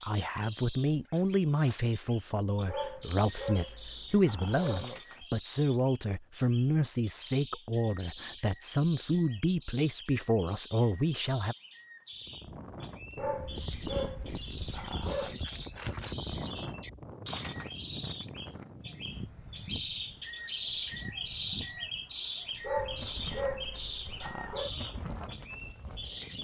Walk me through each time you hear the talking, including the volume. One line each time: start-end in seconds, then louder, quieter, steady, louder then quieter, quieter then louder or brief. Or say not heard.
0.0-11.6 steady.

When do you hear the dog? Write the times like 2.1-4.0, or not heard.
2.6-5.0, 13.2-15.4, 22.6-24.7.